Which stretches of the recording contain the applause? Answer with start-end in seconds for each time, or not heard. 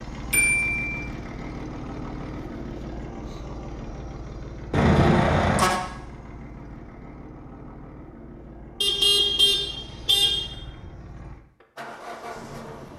not heard.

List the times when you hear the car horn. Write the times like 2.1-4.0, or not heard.
0.3-1.0, 4.7-5.8, 8.8-10.5.